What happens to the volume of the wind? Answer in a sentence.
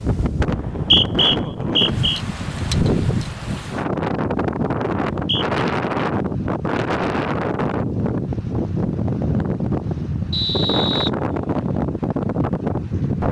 The loudness of the wind stays about the same.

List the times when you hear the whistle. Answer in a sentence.
You can hear the whistle from 0.5 to 2.2 s, from 5.1 to 5.6 s and from 10.3 to 11.7 s.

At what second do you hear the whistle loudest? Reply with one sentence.
The volume of the whistle peaks at 1 second.